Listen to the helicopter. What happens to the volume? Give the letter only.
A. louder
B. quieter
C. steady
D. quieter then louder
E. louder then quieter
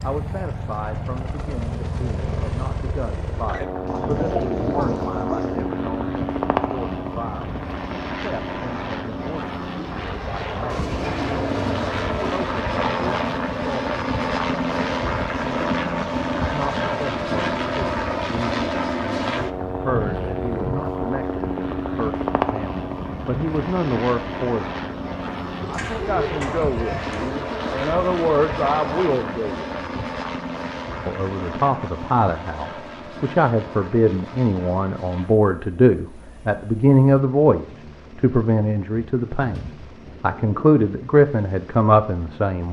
B.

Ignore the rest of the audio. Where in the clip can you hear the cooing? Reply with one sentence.
You can hear the cooing from 3.9 to 5.8 s, from 10.7 to 12.5 s, from 25.6 to 27.3 s and from 39.4 to 40.8 s.